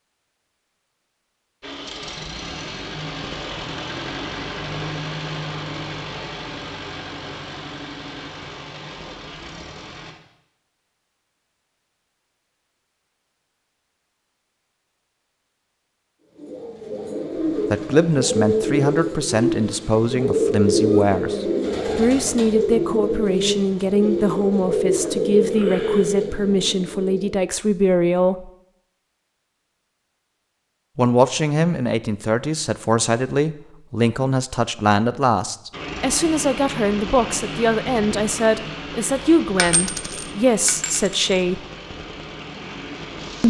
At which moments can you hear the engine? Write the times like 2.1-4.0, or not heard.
1.6-10.2, 35.7-43.4.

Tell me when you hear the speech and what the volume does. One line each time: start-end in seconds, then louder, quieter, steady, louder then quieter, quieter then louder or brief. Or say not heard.
17.7-28.5 steady
30.9-41.6 steady.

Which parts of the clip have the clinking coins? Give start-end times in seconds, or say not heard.
39.5-41.4.